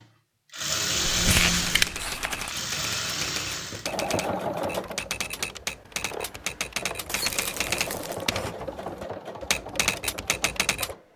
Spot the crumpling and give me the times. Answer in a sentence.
The crumpling can be heard from 1.1 to 2.5 s and from 7.0 to 8.3 s.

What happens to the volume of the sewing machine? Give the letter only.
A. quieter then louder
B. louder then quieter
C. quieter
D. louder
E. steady
C.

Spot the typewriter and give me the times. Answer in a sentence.
The typewriter can be heard from 1.6 to 10.9 s.